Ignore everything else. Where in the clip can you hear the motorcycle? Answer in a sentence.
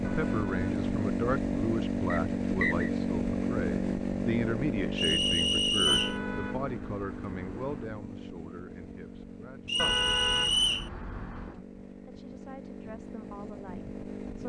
You can hear the motorcycle from 0.0 to 14.4 s.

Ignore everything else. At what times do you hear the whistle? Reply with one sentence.
You can hear the whistle from 2.1 to 2.9 s, from 5.0 to 6.2 s and from 9.7 to 10.9 s.